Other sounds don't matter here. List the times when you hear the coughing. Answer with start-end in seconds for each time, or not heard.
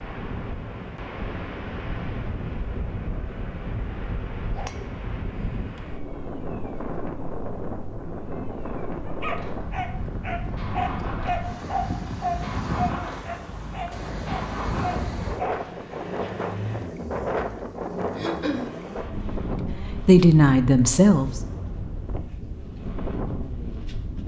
18.1-18.7.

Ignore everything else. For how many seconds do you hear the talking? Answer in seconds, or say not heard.
2 s.